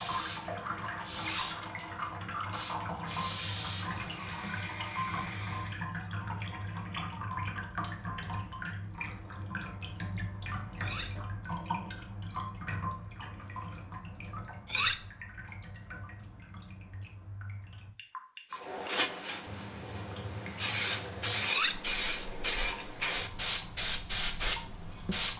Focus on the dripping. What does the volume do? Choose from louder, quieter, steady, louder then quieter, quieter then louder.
quieter.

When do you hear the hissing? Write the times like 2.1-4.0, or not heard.
0.0-5.8, 18.5-25.3.